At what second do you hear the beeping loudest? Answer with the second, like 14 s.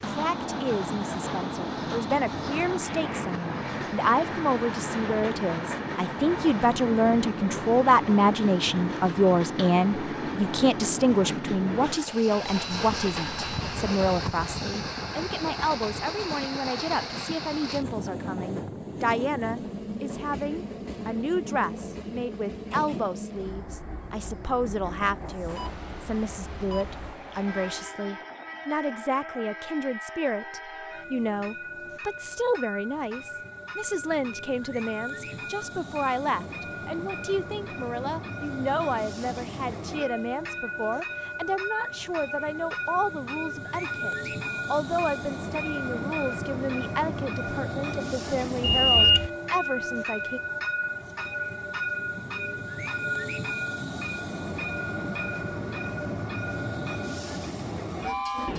49 s.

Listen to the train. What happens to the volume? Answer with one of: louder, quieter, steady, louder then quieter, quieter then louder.
quieter then louder.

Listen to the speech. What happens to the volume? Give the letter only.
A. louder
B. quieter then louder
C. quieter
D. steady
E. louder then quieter
C.